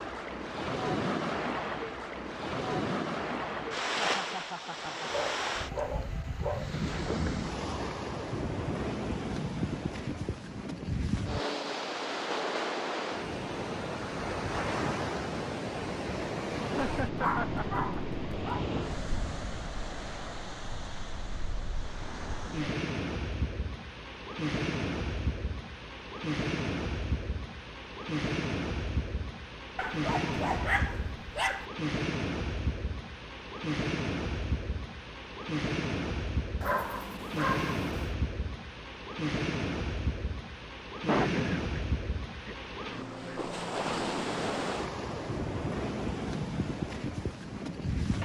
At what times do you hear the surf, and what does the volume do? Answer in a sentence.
The surf can be heard from 0.0 to 48.2 s, at a steady volume.